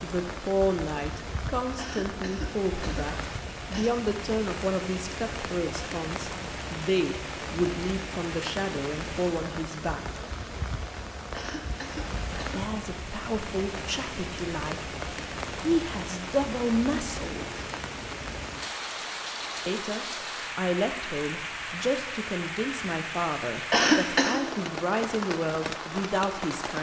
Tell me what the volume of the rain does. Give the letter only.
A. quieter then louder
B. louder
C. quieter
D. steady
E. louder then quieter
D.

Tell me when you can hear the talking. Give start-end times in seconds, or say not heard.
0.0-10.2, 12.3-14.9, 15.6-17.6, 19.6-26.7.